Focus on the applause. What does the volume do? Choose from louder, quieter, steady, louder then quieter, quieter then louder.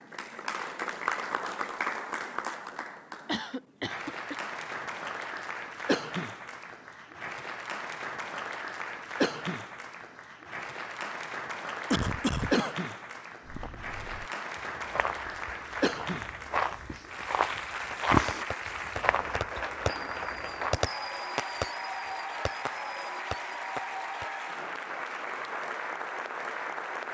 steady.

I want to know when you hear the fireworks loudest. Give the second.
21 s.